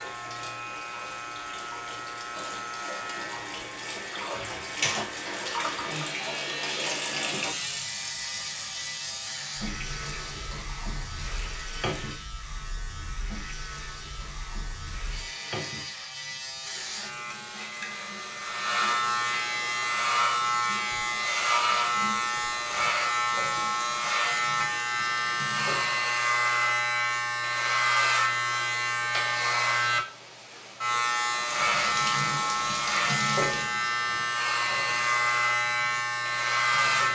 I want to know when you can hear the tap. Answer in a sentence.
The tap can be heard from 0.0 to 26.1 s and from 31.4 to 37.0 s.